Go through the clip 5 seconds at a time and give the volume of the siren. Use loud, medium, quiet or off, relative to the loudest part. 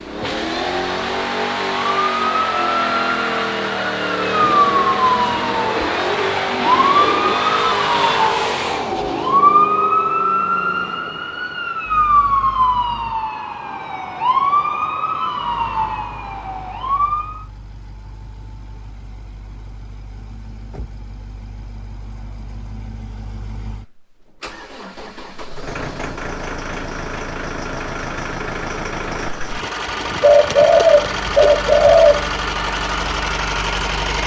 loud, loud, loud, medium, off, off, off.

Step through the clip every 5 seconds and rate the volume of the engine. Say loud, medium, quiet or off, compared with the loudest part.
loud, loud, quiet, quiet, quiet, medium, loud.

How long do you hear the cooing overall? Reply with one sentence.
The cooing can be heard for 5 seconds in total.